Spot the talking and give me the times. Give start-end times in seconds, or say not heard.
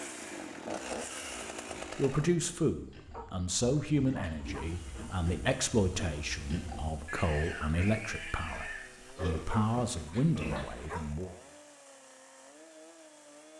1.9-11.3.